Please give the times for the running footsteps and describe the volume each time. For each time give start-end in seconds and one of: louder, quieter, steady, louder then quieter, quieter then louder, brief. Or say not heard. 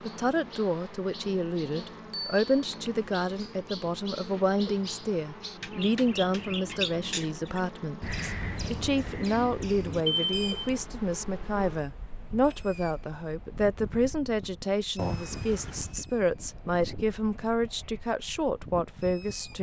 not heard.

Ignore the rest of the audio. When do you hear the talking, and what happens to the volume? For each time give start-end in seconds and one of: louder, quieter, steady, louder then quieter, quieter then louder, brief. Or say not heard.
0.0-19.5 steady.